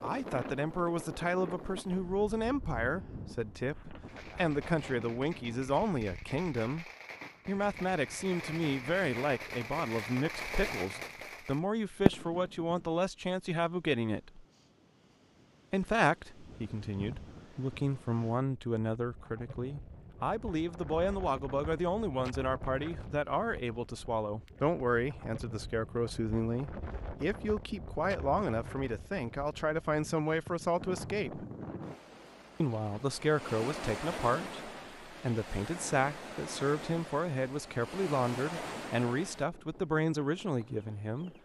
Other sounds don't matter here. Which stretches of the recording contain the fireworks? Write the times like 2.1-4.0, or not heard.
3.8-12.9.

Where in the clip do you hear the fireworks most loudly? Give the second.
12 s.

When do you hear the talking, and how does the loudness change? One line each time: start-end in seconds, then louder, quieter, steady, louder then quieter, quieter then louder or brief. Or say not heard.
0.0-14.4 steady
15.7-31.4 steady
32.6-41.3 steady.